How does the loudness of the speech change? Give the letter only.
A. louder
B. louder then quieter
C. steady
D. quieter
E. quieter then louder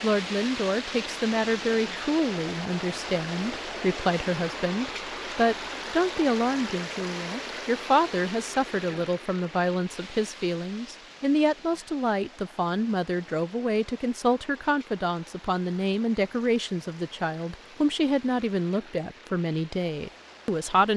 C.